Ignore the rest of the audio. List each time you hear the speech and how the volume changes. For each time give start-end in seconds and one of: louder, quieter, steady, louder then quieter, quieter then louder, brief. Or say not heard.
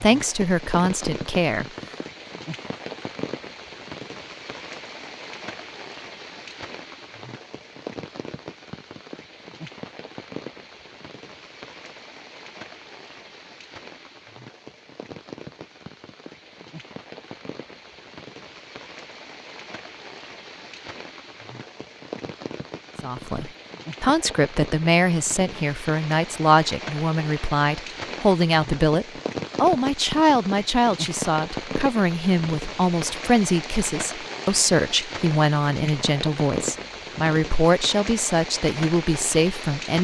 0.0-1.6 brief
23.0-39.9 steady.